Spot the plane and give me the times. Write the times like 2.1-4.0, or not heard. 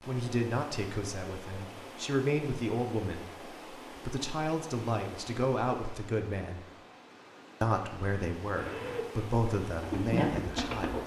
not heard.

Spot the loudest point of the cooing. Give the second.
10 s.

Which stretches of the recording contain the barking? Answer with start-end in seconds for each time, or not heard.
not heard.